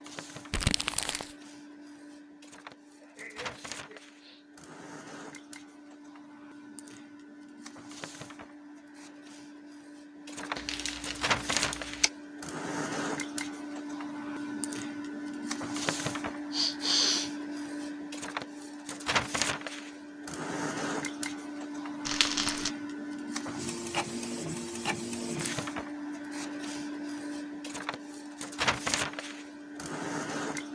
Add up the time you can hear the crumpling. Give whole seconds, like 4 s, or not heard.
3 s.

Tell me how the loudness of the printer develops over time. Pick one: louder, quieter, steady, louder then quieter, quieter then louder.
louder.